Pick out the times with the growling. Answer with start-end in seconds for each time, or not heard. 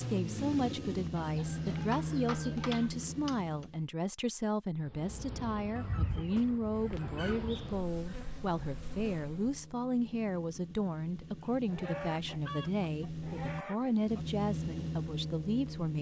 not heard.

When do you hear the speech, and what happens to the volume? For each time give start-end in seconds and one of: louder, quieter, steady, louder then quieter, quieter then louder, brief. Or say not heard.
0.0-15.9 steady.